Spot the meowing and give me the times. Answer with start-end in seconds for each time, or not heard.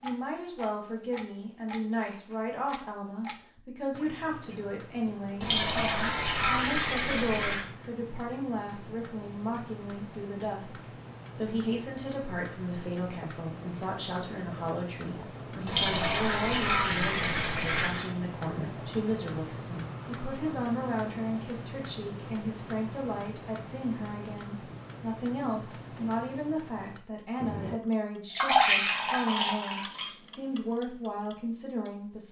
not heard.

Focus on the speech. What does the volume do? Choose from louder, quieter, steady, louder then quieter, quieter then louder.
steady.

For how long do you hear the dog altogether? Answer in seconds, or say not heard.
not heard.